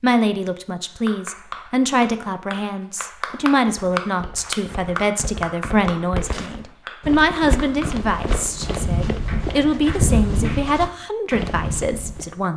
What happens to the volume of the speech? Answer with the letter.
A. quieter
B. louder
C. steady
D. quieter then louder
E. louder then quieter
C.